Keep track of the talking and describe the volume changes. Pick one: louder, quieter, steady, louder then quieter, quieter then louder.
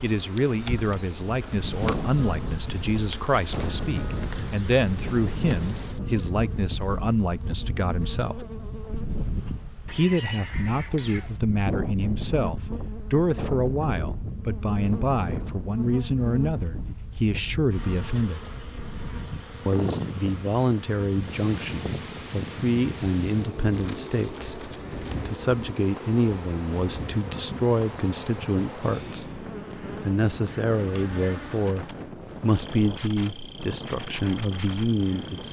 steady.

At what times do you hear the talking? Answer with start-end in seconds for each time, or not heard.
0.0-8.4, 9.9-18.4, 19.6-35.4.